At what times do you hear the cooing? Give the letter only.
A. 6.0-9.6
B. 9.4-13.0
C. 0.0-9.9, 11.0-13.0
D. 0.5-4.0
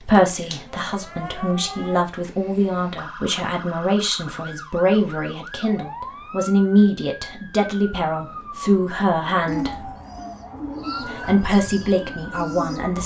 B.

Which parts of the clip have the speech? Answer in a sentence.
You can hear the speech from 0.0 to 9.9 s and from 11.0 to 13.0 s.